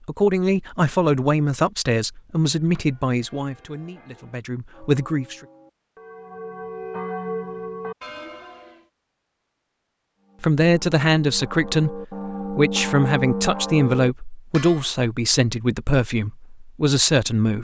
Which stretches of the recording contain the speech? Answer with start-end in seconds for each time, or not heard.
0.1-5.3, 10.4-17.5.